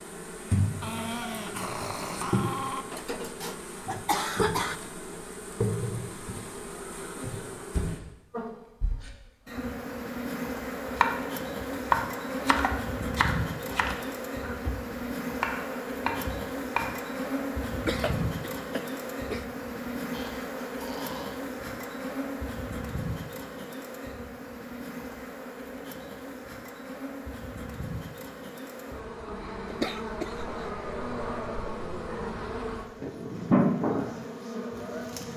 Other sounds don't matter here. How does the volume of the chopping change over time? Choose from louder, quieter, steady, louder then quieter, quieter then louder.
quieter.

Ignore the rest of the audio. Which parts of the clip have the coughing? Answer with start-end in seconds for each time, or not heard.
2.9-4.8, 17.8-19.4, 29.6-30.6.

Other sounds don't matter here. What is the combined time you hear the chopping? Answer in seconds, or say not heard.
6 s.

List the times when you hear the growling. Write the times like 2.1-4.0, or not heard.
0.8-2.9, 20.1-21.4, 30.4-32.5.